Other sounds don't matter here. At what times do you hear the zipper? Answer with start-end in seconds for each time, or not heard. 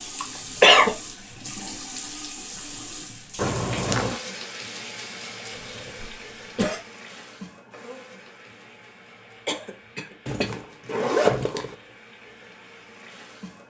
3.4-4.2, 10.2-11.8.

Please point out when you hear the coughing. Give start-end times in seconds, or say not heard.
0.2-0.9, 5.5-6.8, 9.4-11.1.